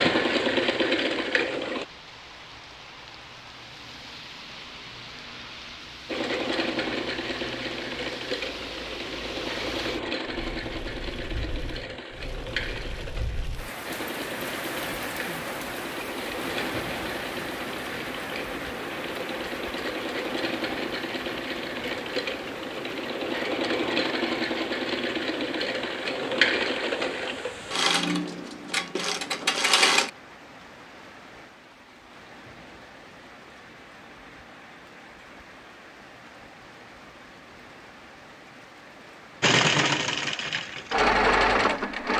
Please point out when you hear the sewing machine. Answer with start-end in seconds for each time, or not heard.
0.0-1.9, 6.0-30.1, 39.4-42.1.